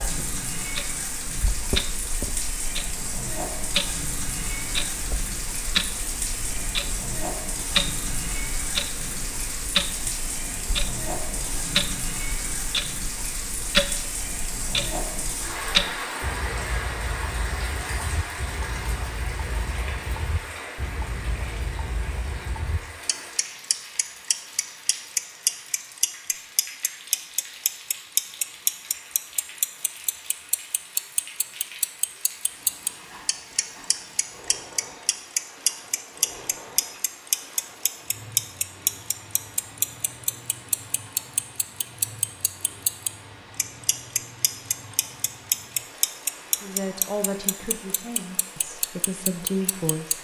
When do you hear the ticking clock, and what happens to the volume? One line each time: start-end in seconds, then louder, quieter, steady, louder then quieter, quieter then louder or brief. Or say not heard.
0.0-50.1 steady.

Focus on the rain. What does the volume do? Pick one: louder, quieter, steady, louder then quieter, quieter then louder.
quieter.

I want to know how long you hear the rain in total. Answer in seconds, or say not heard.
50 s.